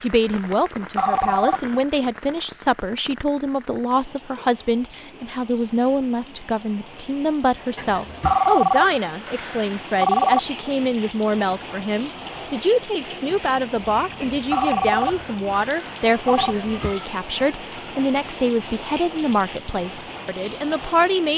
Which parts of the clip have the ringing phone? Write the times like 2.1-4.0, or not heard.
0.9-1.8, 8.2-10.4, 14.5-16.6.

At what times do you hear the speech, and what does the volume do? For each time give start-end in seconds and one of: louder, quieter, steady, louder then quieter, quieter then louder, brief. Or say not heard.
0.0-21.3 steady.